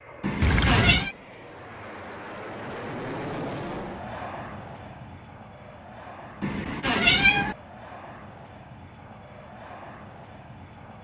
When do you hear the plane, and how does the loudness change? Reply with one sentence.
You can hear the plane from 0.0 to 10.9 s, getting louder then quieter.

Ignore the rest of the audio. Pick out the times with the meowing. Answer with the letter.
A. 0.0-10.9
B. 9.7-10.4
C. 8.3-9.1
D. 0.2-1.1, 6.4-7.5
D.